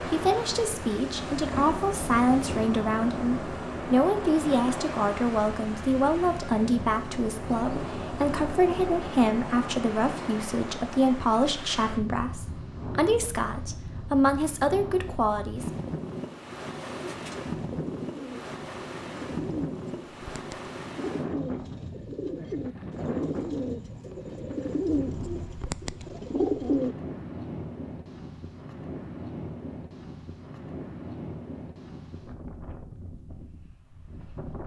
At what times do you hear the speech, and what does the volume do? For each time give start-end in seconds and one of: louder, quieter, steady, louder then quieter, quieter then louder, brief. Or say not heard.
0.0-15.7 steady.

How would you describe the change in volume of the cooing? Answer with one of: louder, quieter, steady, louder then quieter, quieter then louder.
louder.